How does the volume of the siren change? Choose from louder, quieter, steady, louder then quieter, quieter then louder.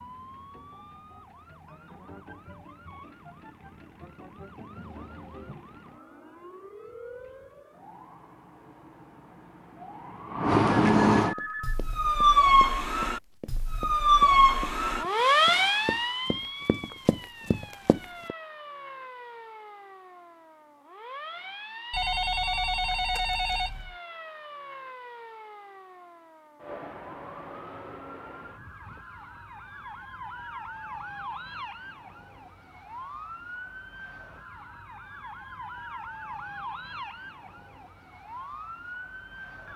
louder then quieter.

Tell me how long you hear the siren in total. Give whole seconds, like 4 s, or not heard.
40 s.